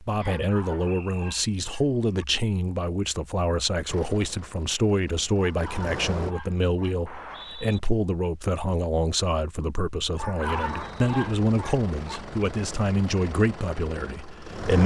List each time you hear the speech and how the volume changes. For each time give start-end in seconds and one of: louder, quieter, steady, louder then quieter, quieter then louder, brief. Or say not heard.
0.0-14.8 steady.